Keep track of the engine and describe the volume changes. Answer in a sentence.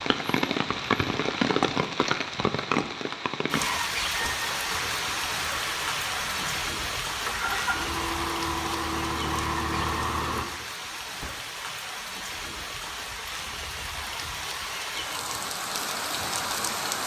The loudness of the engine goes up.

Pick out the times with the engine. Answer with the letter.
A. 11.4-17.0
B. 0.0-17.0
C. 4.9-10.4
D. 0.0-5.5
C.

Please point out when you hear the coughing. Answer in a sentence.
The coughing can't be heard in this clip.